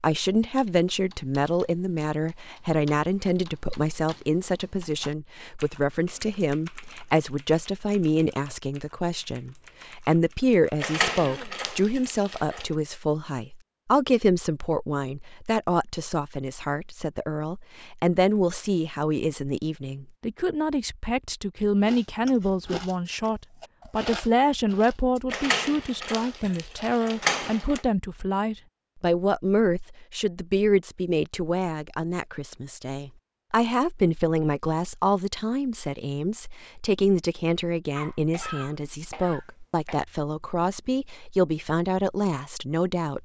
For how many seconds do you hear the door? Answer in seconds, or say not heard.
4 s.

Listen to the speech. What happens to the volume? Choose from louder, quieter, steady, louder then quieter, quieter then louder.
steady.